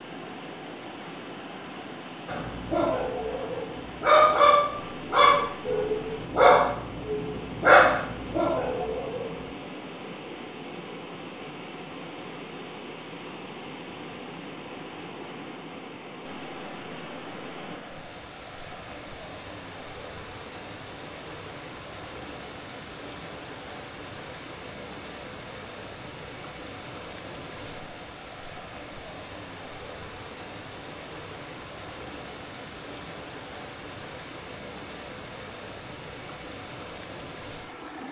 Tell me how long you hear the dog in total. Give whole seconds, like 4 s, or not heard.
7 s.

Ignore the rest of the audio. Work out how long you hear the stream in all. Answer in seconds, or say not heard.
38 s.